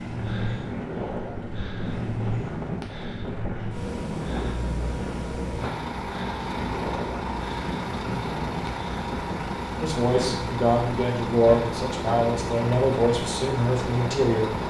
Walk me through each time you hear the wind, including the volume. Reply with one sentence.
You can hear the wind from 0.0 to 14.6 s, at a steady volume.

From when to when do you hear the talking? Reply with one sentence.
The talking can be heard from 9.8 to 14.6 s.